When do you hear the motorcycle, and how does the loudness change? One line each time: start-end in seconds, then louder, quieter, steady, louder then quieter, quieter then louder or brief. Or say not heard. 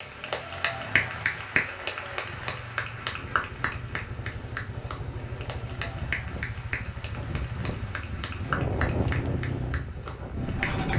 0.0-10.9 louder.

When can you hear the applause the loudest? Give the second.
1 s.